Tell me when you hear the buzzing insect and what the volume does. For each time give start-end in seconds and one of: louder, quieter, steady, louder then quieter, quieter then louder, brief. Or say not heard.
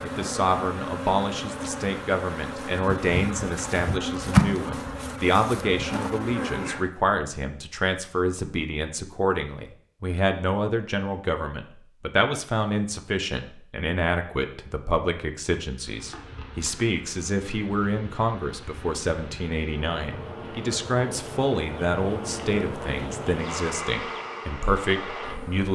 0.0-6.9 louder then quieter
15.7-25.7 louder.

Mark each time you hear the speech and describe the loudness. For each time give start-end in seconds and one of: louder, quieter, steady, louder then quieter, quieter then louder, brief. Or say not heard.
0.0-25.7 steady.